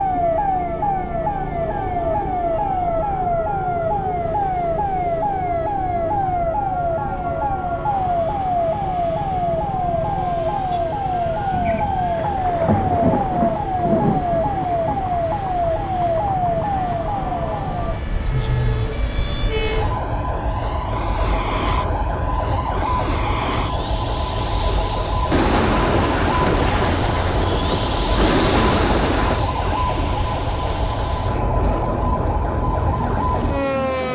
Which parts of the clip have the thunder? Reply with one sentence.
You can hear the thunder from 11.5 to 15.1 s and from 25.3 to 29.4 s.